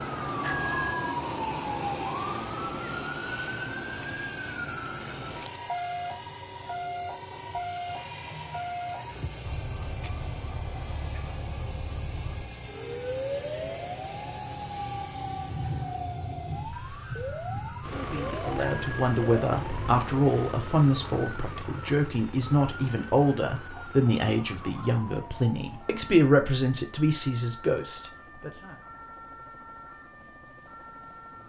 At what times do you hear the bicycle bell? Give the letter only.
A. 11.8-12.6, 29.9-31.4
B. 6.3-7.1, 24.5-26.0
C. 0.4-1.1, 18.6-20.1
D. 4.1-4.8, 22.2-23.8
C.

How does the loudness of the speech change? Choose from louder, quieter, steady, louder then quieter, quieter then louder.
steady.